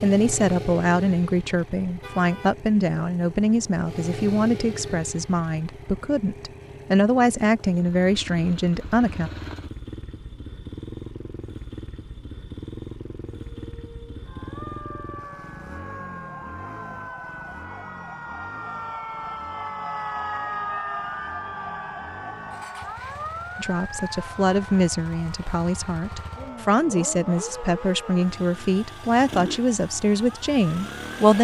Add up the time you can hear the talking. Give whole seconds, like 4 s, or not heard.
17 s.